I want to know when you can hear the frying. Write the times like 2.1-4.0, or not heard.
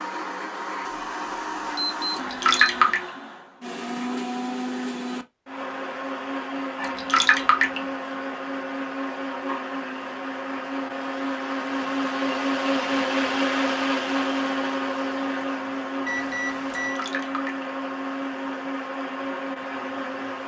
not heard.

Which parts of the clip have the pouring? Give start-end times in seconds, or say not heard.
2.1-3.0, 6.8-7.8, 16.8-17.6.